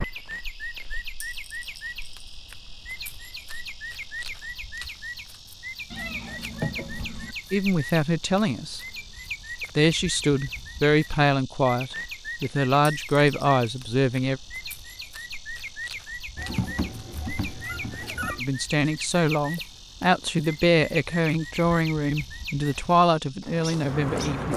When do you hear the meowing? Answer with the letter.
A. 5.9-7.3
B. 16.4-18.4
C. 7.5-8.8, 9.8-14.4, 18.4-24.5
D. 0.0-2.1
A.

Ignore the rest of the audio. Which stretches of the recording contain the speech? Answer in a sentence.
The speech can be heard from 7.5 to 8.8 s, from 9.8 to 14.4 s and from 18.4 to 24.5 s.